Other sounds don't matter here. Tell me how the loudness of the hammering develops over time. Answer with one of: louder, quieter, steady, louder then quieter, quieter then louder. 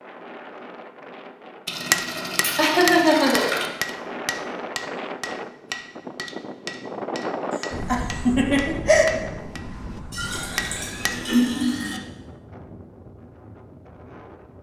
quieter.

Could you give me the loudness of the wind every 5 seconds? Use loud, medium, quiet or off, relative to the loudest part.
loud, loud, medium.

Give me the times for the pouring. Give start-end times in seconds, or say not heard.
1.6-3.7, 10.1-12.0.